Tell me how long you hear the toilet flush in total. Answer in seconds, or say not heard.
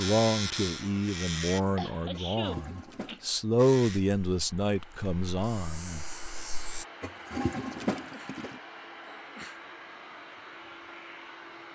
3 s.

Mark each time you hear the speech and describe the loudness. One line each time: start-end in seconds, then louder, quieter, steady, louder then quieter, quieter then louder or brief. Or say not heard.
0.0-6.0 louder then quieter.